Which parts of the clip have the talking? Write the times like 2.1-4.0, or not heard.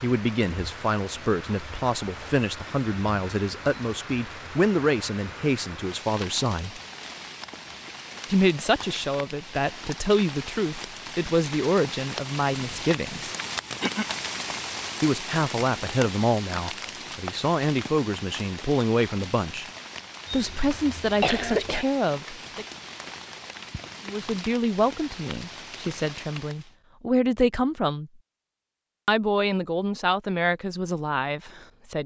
0.0-6.8, 8.2-13.3, 15.0-19.6, 20.3-22.6, 24.1-28.1, 29.1-32.0.